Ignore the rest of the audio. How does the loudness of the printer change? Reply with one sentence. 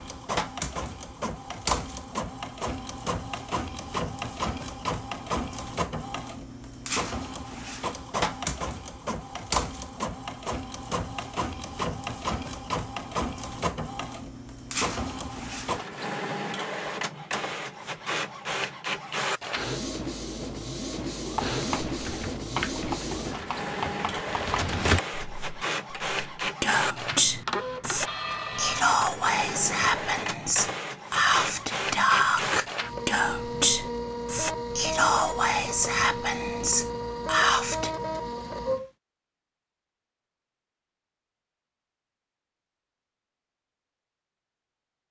The loudness of the printer stays about the same.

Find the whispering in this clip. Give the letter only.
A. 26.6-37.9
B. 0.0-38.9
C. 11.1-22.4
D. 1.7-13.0
A.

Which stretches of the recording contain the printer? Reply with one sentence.
The printer can be heard from 0.0 to 38.9 s.